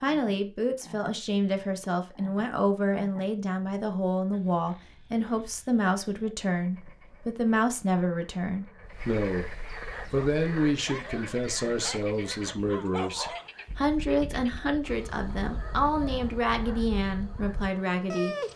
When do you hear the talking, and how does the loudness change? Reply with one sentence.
The talking can be heard from 0.0 to 18.4 s, at a steady volume.